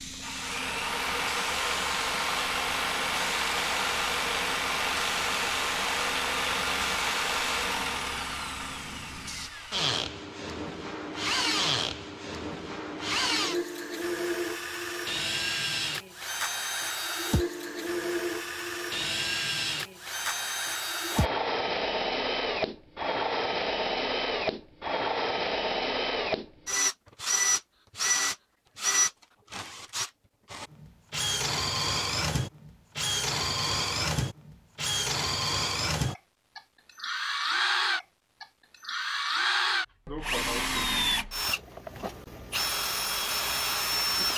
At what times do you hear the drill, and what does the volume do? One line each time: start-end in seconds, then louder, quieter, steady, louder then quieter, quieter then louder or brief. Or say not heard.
0.0-44.3 steady.